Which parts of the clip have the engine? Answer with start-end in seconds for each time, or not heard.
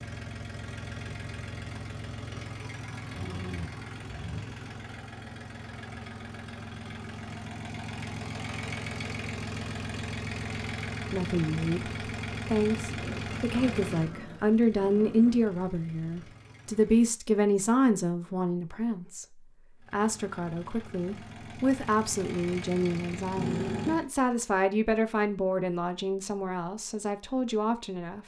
0.0-17.1, 19.8-24.1.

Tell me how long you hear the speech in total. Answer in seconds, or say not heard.
17 s.